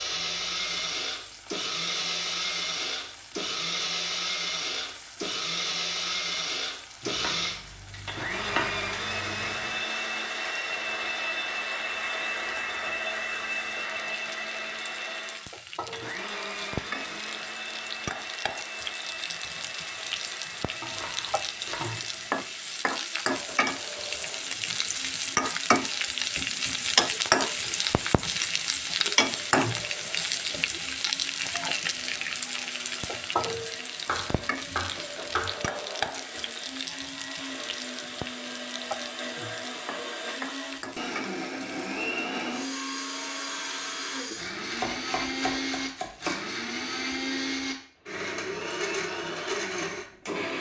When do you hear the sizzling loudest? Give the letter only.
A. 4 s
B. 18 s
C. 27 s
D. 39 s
C.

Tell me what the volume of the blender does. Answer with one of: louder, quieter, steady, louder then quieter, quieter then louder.
quieter then louder.